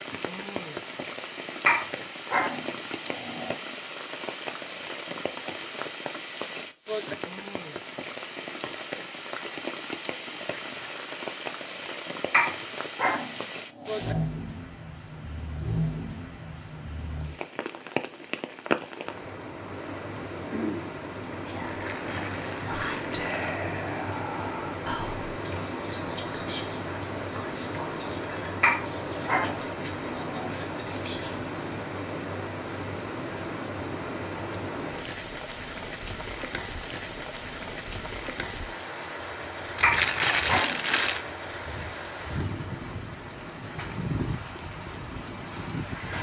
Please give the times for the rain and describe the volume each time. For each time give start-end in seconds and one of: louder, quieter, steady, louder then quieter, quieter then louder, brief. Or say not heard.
0.0-46.1 steady.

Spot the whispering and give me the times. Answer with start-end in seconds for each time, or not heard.
21.4-31.4.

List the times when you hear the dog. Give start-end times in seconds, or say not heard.
1.6-3.5, 12.3-14.2, 28.6-30.6, 39.8-40.9.